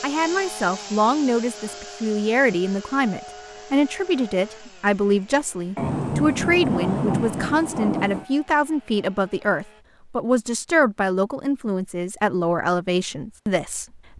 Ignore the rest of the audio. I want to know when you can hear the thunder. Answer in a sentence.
The thunder can be heard from 5.8 to 8.2 s.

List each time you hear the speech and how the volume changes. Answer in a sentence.
The speech can be heard from 0.0 to 14.1 s, at a steady volume.